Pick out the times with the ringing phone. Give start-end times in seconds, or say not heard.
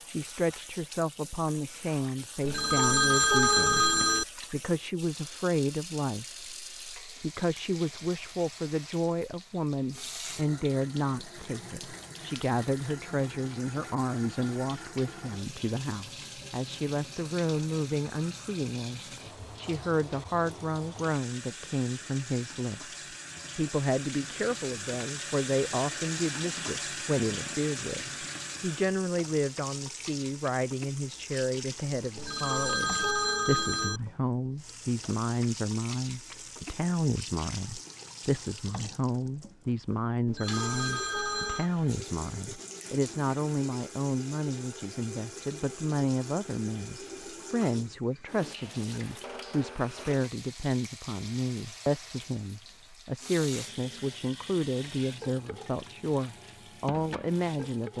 2.5-4.2, 32.1-34.0, 40.2-41.7.